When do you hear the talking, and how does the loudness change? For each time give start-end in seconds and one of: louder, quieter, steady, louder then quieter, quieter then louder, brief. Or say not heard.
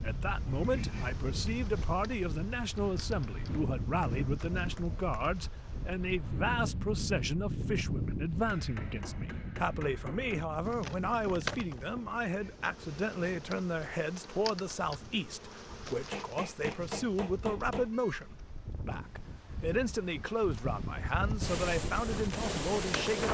0.0-23.2 steady.